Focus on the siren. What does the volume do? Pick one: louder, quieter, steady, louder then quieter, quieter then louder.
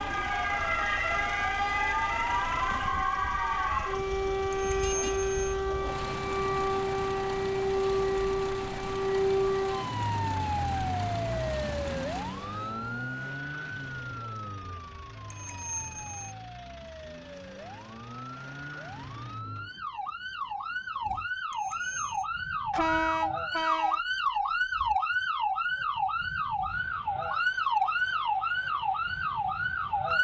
quieter then louder.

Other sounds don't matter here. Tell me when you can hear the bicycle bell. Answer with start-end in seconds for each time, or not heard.
4.5-5.5, 15.3-16.3, 21.5-22.2.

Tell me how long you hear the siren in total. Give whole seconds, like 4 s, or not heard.
30 s.